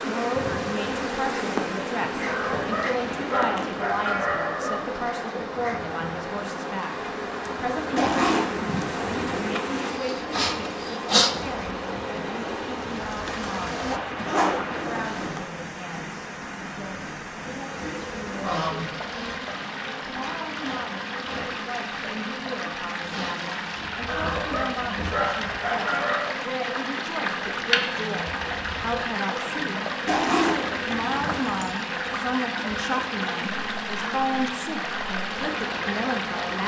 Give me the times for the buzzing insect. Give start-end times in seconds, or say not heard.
0.0-14.0, 17.9-36.6.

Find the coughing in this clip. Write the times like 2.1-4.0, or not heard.
not heard.